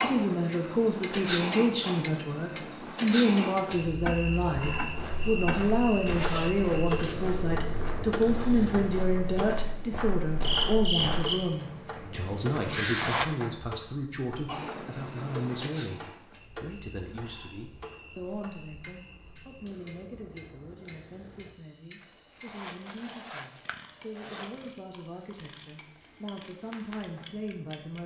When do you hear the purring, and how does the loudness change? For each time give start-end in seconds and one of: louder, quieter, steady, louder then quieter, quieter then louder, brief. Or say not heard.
not heard.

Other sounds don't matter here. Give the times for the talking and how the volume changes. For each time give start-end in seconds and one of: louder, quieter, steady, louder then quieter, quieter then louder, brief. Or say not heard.
0.0-28.0 quieter.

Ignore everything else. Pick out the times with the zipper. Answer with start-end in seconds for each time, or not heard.
6.2-7.2, 12.5-13.2, 22.0-24.6.